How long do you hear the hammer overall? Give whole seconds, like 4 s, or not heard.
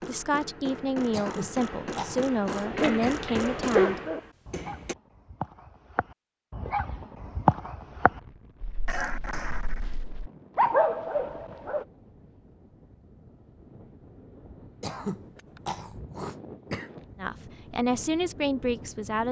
5 s.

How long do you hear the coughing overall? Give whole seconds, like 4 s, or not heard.
5 s.